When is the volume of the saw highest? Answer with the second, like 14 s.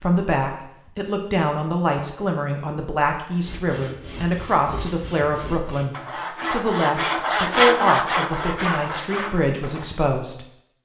8 s.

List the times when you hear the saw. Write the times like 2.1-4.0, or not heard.
3.4-9.9.